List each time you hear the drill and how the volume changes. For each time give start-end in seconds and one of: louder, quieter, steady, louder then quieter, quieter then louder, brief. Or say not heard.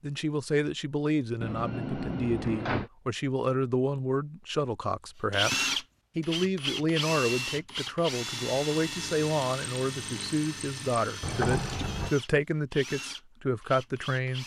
5.3-14.4 quieter.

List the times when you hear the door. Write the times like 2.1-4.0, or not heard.
1.4-2.9, 11.2-12.2.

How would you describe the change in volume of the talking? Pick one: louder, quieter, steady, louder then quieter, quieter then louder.
steady.